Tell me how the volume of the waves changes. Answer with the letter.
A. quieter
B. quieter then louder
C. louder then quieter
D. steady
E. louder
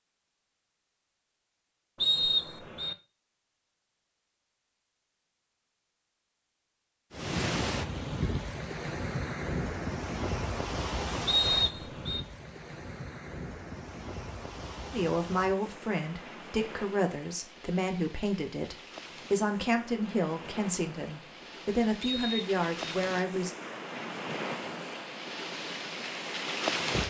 B.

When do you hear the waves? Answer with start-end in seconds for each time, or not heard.
7.1-27.0.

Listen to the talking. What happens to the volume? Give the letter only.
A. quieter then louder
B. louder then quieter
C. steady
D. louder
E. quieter
C.